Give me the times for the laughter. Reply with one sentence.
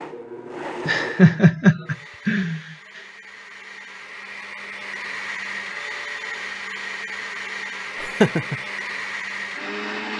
The laughter can be heard from 0.8 to 2.6 s and from 8.0 to 8.6 s.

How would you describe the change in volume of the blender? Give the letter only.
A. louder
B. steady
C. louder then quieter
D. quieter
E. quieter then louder
E.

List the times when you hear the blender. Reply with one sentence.
You can hear the blender from 0.0 to 10.1 s.